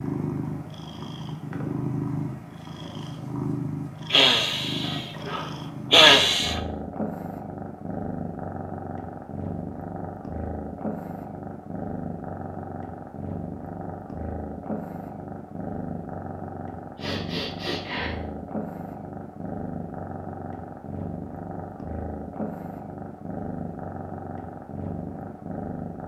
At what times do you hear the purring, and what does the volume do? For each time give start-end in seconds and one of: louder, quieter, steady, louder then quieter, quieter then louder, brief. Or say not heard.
0.0-26.0 steady.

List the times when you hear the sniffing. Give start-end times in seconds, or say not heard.
4.1-6.6, 16.9-18.1.